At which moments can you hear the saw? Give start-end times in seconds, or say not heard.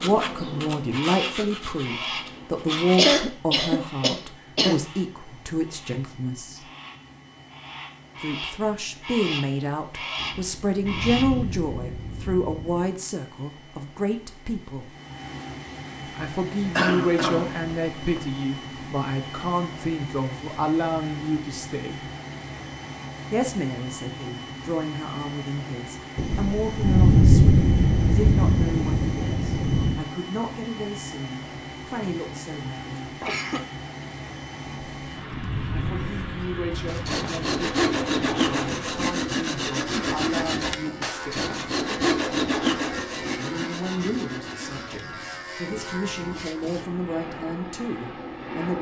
0.0-3.1, 36.9-46.9.